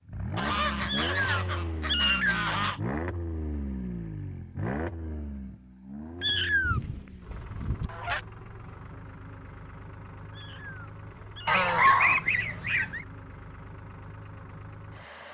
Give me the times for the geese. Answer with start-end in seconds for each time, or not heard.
0.3-2.8, 6.6-8.2, 11.4-13.1.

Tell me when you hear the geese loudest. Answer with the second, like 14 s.
12 s.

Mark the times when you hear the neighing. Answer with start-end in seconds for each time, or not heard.
not heard.